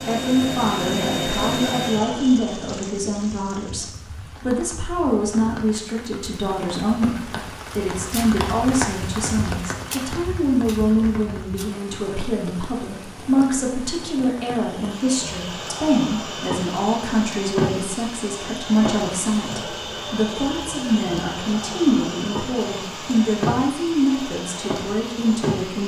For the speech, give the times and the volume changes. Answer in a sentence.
You can hear the speech from 0.1 to 25.8 s, at a steady volume.